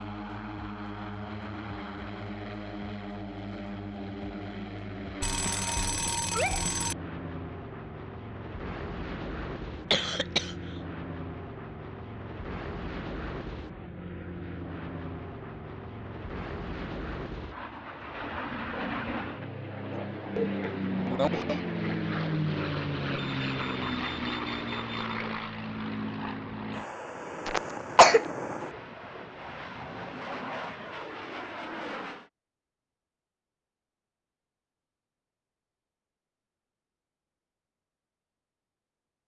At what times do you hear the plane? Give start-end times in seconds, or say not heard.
0.0-32.3.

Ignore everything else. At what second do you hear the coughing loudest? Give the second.
28 s.